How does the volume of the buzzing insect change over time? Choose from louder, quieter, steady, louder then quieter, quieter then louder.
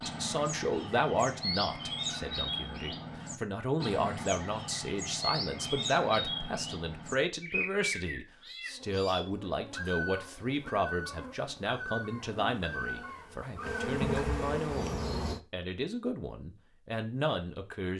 louder.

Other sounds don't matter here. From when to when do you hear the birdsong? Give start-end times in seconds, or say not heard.
0.0-13.8.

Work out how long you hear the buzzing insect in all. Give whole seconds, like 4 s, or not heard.
7 s.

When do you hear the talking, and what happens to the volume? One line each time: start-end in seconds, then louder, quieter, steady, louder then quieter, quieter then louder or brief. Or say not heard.
0.1-17.9 steady.